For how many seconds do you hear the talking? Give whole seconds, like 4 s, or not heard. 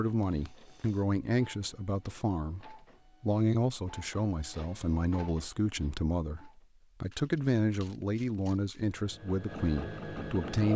11 s.